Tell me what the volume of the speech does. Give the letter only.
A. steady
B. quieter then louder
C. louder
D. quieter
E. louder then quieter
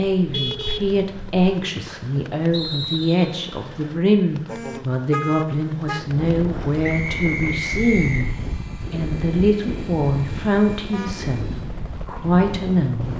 A.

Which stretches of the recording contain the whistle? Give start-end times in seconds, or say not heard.
2.5-3.4, 6.8-8.3.